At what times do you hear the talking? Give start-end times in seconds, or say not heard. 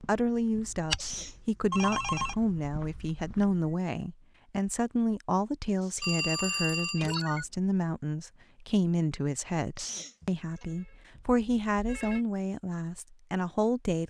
0.0-14.0.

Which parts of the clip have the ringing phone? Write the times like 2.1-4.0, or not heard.
1.7-2.4, 6.0-7.5, 10.2-12.2.